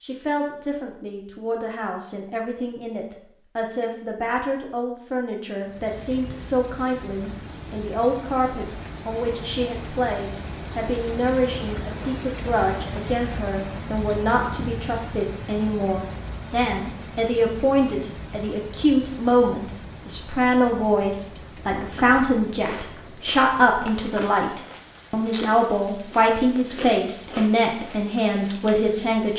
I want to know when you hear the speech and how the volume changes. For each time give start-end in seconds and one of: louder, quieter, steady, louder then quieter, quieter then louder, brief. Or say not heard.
0.0-29.3 louder.